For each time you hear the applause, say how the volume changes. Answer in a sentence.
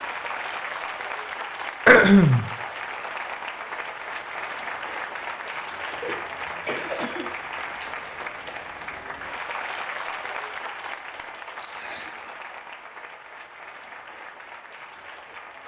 The applause can be heard from 0.0 to 15.6 s, getting quieter.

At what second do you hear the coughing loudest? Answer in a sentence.
The loudest moment of the coughing is at 2 seconds.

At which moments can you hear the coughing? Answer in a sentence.
You can hear the coughing from 1.9 to 2.5 s, from 5.9 to 7.3 s and from 11.6 to 12.3 s.